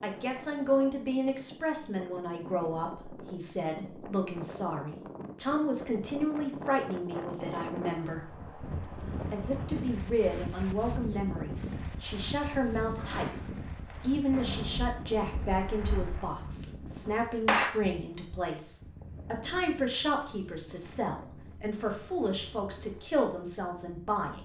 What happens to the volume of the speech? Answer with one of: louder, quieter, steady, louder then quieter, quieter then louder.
steady.